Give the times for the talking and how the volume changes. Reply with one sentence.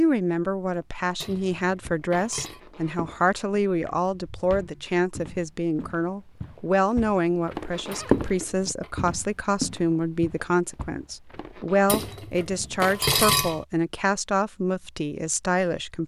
The talking can be heard from 0.0 to 16.0 s, at a steady volume.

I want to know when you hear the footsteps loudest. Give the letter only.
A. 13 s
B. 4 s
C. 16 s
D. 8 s
D.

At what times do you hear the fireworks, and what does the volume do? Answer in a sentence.
The fireworks can't be heard in this clip.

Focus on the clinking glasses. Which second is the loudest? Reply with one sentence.
The loudest moment of the clinking glasses is at 13 seconds.